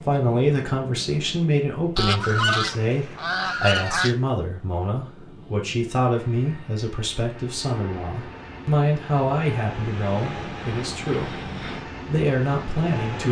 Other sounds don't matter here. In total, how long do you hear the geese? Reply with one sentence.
You can hear the geese for 2 seconds altogether.